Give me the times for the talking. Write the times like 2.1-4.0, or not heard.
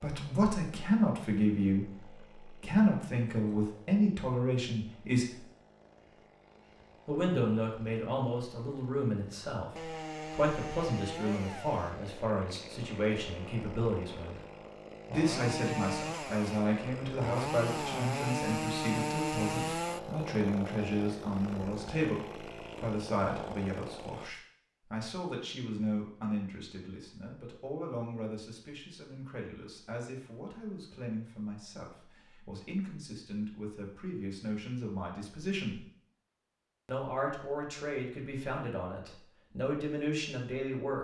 0.0-5.5, 7.0-14.4, 15.1-35.8, 36.9-40.9.